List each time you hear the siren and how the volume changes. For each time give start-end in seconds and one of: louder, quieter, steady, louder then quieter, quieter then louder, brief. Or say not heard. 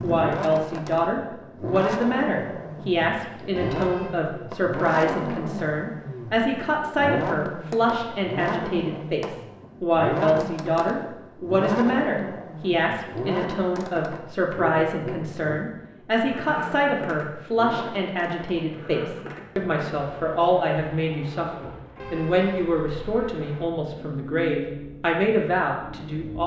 not heard.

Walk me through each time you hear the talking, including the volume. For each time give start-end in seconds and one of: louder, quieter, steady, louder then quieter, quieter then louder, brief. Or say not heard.
0.0-26.4 steady.